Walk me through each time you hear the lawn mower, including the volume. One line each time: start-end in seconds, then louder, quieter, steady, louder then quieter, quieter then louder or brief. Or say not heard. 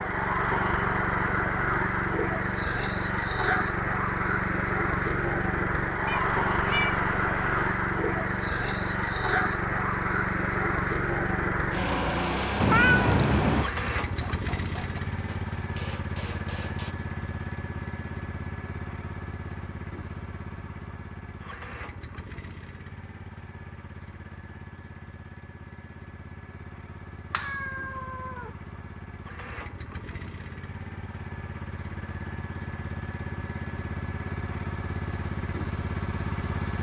0.0-36.7 quieter then louder.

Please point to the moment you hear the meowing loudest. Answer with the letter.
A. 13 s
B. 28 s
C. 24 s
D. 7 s
A.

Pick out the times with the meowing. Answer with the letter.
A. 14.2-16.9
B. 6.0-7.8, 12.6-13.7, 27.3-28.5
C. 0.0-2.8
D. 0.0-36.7
B.